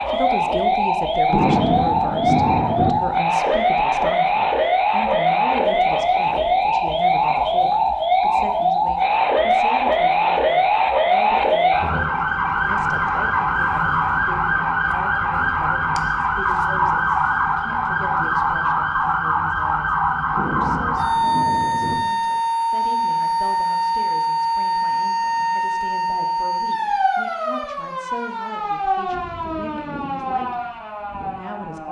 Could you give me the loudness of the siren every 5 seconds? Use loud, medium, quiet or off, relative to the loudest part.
loud, loud, loud, loud, loud, medium, medium.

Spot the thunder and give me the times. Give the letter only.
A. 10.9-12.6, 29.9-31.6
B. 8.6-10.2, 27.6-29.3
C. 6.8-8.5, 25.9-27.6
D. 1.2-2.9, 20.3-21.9
D.